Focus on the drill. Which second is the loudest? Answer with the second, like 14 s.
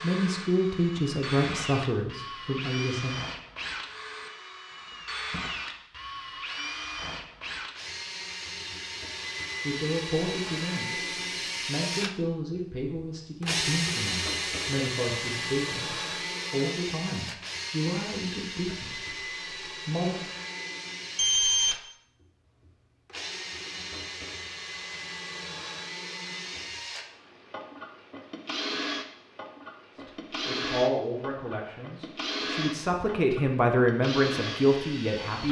14 s.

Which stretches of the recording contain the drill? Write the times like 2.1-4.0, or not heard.
0.0-35.4.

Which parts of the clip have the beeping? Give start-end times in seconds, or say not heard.
21.1-21.8.